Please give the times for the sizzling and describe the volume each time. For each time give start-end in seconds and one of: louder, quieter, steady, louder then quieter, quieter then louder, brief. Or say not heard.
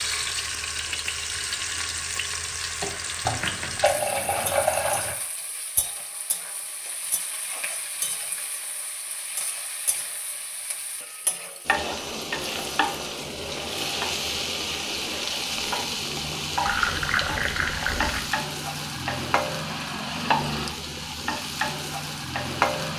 0.0-22.9 quieter then louder.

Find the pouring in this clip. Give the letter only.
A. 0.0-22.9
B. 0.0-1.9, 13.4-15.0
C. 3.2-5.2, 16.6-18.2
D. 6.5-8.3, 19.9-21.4
C.